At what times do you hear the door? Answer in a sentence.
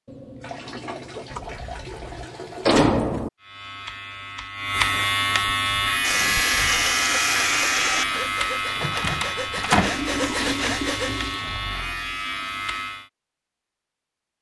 You can hear the door from 1.3 to 3.3 s and from 8.8 to 10.0 s.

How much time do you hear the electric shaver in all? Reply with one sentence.
The electric shaver can be heard for 10 seconds in total.